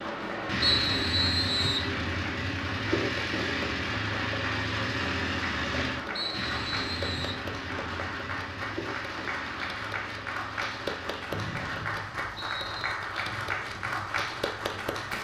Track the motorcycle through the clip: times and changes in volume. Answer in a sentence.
You can hear the motorcycle from 0.0 to 15.1 s, getting quieter.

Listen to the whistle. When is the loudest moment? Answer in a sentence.
The volume of the whistle peaks at 1 second.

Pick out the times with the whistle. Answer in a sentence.
The whistle can be heard from 0.6 to 1.9 s, from 6.2 to 7.5 s and from 11.3 to 12.9 s.